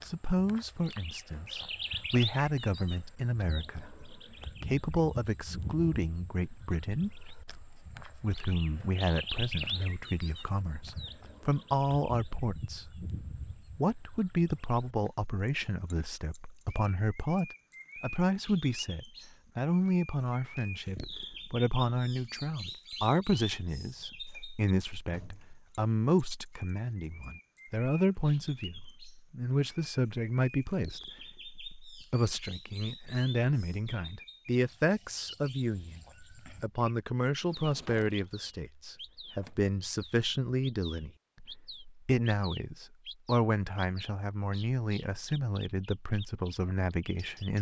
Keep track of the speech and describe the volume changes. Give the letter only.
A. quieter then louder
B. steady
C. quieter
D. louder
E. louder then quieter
B.